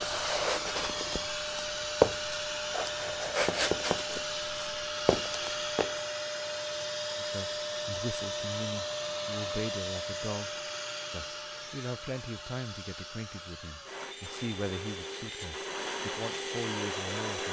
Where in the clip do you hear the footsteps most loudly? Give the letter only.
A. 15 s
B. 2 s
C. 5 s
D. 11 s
B.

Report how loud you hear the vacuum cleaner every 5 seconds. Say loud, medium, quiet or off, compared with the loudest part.
loud, loud, medium, loud.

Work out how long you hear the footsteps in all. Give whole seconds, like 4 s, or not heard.
6 s.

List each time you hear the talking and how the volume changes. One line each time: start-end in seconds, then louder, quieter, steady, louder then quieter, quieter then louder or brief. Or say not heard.
7.2-17.4 steady.